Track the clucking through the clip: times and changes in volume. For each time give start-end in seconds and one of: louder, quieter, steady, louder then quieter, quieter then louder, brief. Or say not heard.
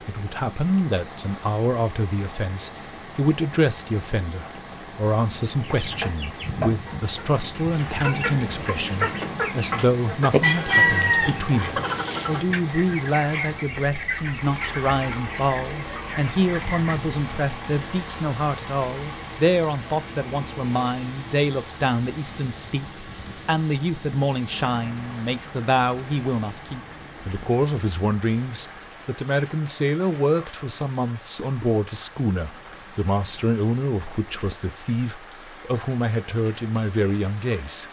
5.6-16.9 louder then quieter.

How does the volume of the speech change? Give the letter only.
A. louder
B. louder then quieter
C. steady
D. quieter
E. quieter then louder
C.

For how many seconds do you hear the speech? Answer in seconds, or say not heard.
38 s.